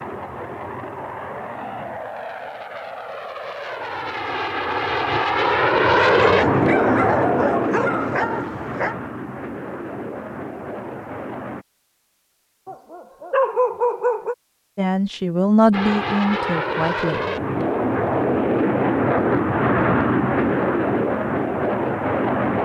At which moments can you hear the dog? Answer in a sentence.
You can hear the dog from 6.0 to 8.9 s and from 12.7 to 14.3 s.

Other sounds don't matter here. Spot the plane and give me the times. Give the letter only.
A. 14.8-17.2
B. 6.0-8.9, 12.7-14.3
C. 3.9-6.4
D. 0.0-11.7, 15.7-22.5
D.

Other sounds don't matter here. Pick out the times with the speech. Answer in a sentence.
You can hear the speech from 14.8 to 17.2 s.